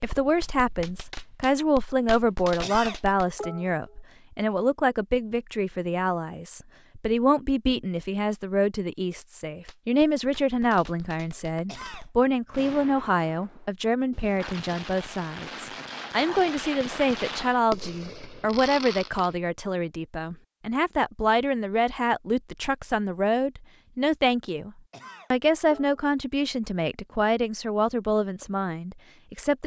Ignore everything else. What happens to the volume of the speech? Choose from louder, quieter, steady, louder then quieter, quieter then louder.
steady.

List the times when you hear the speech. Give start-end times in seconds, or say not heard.
0.0-24.7, 25.3-29.6.